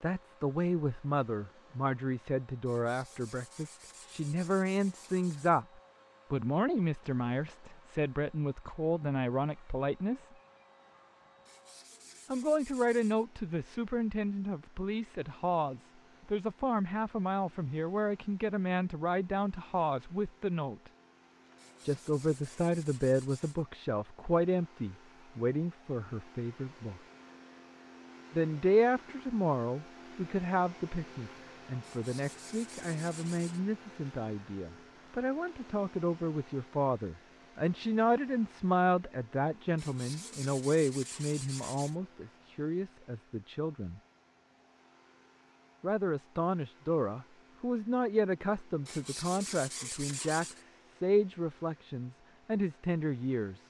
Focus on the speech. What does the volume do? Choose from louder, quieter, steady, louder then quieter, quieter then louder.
steady.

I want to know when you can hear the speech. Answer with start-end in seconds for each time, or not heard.
0.0-10.3, 12.3-20.9, 21.9-27.0, 28.3-44.0, 45.8-53.6.